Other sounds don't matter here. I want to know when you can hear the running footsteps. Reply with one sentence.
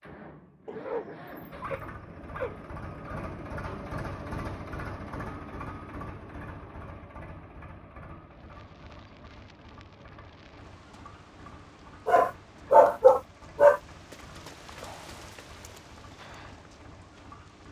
You can't hear the running footsteps here.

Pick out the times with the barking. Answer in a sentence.
You can hear the barking from 0.7 to 3.4 s and from 12.1 to 13.8 s.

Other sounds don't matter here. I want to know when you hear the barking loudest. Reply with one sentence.
The volume of the barking peaks at 13 seconds.